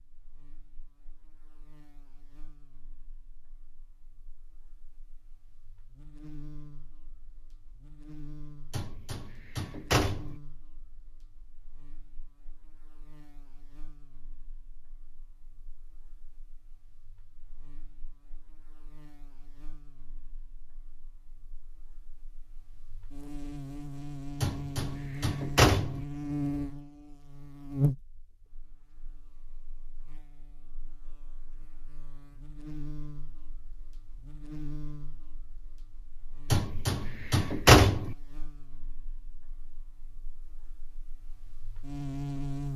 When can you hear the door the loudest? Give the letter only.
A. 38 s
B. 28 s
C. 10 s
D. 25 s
A.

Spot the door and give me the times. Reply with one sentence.
You can hear the door from 8.7 to 10.3 s, from 24.4 to 26.1 s and from 36.5 to 38.1 s.